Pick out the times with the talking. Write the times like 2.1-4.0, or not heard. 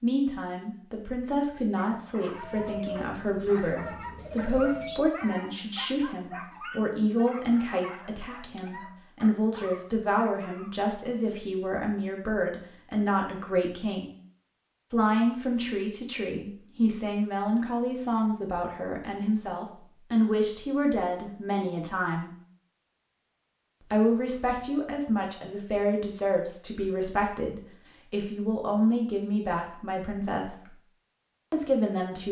0.0-14.1, 14.9-22.3, 23.9-30.7, 31.5-32.2.